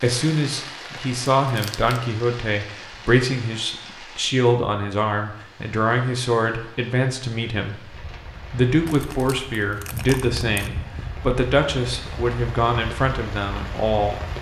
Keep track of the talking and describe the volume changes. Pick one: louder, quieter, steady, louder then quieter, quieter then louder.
steady.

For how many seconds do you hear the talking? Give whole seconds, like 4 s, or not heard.
14 s.